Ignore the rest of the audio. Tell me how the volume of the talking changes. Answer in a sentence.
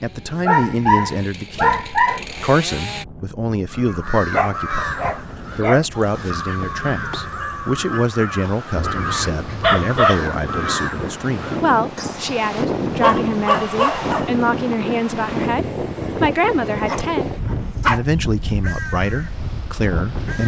The volume of the talking stays about the same.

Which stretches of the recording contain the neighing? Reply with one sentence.
The neighing can't be heard in this clip.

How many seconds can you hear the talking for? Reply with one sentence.
The talking can be heard for 20 seconds in total.